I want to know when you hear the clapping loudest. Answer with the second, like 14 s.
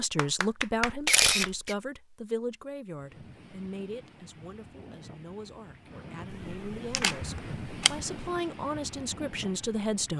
1 s.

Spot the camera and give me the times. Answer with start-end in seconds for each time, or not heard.
1.0-1.8, 6.3-8.1.